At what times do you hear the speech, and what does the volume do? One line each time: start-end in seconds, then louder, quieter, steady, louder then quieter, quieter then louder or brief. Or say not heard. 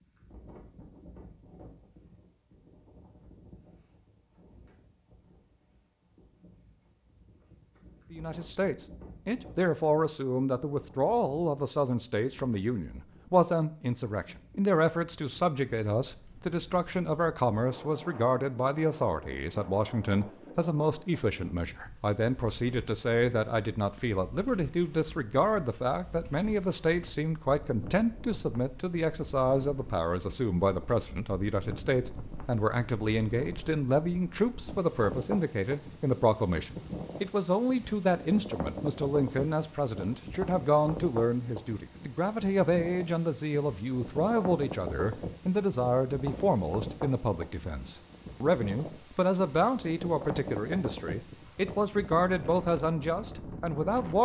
8.1-54.2 steady.